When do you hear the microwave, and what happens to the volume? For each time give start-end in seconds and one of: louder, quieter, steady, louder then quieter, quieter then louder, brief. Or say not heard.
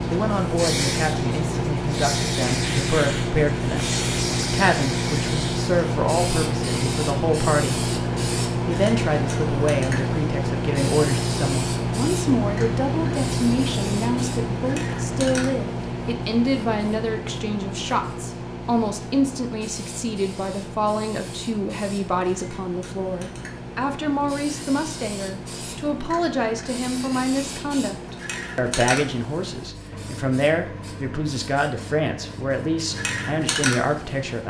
0.0-34.4 quieter.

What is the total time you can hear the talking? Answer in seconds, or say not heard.
34 s.